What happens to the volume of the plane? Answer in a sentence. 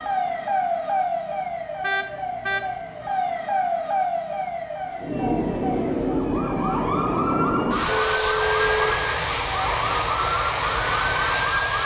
The volume of the plane stays about the same.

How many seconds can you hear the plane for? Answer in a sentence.
The plane can be heard for 7 seconds in total.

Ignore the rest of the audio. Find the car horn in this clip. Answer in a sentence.
You can hear the car horn from 1.8 to 2.6 s and from 7.8 to 9.0 s.